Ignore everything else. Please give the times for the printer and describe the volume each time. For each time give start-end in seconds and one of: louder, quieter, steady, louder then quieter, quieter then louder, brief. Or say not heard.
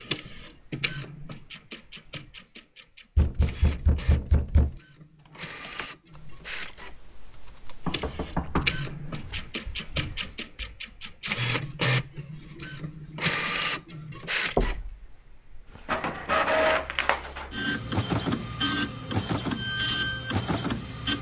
0.0-21.1 louder.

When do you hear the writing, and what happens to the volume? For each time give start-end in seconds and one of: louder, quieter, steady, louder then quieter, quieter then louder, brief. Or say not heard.
not heard.